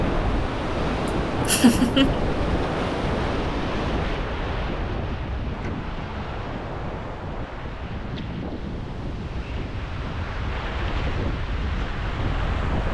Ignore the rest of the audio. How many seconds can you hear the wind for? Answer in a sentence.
The wind can be heard for 13 seconds in total.